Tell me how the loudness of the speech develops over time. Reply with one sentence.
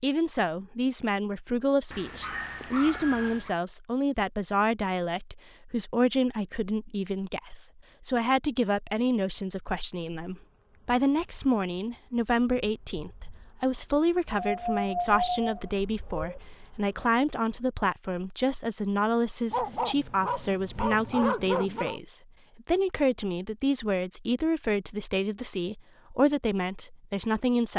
The volume of the speech stays about the same.